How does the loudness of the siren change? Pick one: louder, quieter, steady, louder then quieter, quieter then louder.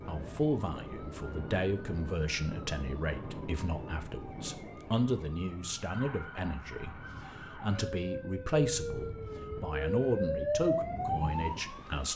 louder.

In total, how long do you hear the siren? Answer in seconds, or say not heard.
12 s.